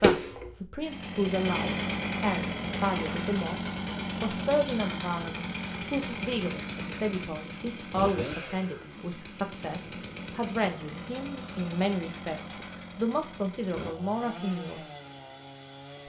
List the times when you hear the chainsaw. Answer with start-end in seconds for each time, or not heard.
0.0-16.0.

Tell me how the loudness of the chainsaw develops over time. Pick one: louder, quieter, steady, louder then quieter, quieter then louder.
quieter.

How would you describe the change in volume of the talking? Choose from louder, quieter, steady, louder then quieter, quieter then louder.
steady.